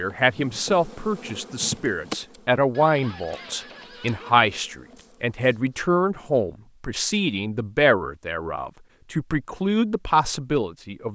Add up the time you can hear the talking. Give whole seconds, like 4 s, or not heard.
11 s.